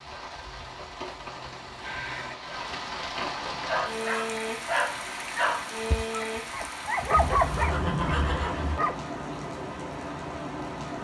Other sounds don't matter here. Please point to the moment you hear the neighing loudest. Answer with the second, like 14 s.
8 s.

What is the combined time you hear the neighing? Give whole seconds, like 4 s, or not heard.
4 s.